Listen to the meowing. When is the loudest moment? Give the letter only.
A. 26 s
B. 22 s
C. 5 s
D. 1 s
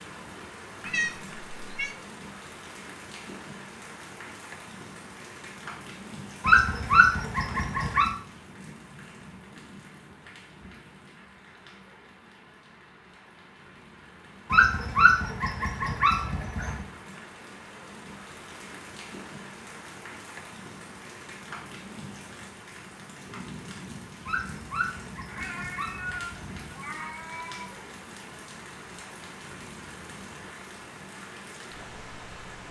D.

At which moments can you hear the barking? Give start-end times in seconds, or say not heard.
6.4-8.1, 14.5-16.9, 24.2-26.8.